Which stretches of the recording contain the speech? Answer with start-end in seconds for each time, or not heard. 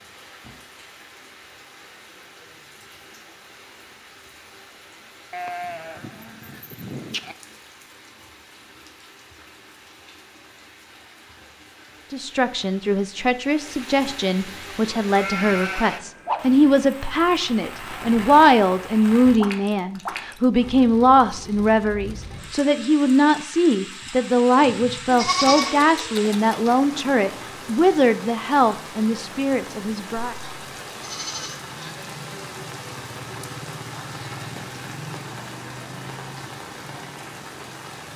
12.1-30.4.